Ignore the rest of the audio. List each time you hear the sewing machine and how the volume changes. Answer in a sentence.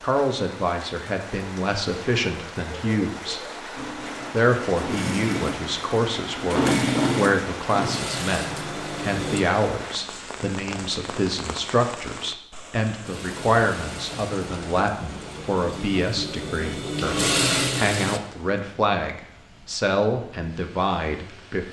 You can hear the sewing machine from 3.8 to 9.4 s, getting louder then quieter; and from 13.0 to 18.2 s, getting quieter then louder.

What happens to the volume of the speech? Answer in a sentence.
The loudness of the speech stays about the same.